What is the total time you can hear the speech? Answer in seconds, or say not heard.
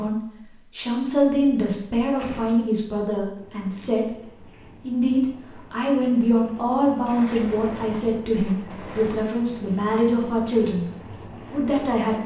11 s.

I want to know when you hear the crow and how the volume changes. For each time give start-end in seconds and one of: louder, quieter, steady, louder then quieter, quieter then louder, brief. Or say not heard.
not heard.